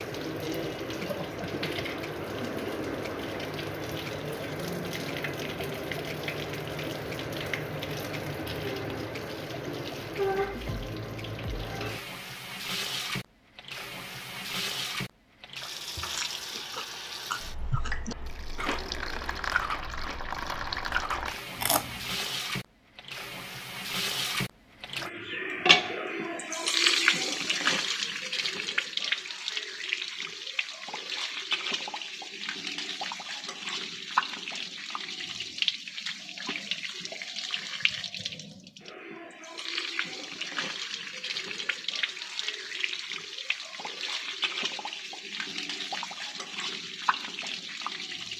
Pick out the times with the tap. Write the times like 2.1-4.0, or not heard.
0.0-48.3.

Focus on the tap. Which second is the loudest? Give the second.
27 s.